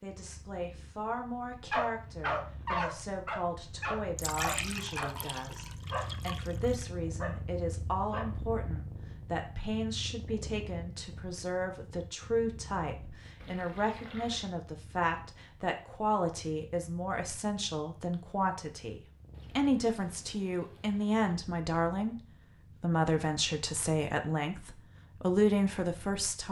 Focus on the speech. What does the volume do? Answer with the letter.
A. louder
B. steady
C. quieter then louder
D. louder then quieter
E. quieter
A.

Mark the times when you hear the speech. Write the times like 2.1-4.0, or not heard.
0.0-22.1, 22.8-26.4.